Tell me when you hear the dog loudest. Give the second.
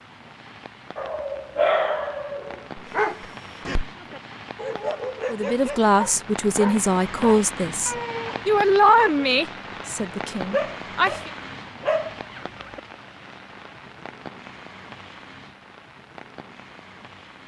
2 s.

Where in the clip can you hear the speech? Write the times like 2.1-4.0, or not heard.
5.3-11.3.